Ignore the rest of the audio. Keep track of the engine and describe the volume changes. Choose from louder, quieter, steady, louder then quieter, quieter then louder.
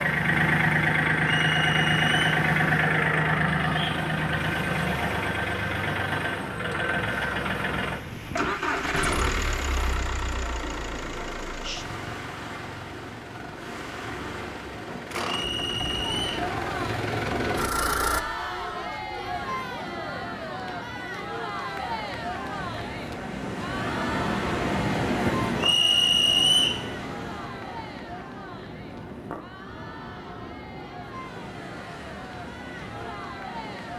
quieter then louder.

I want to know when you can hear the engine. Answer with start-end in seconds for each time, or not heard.
0.0-18.2.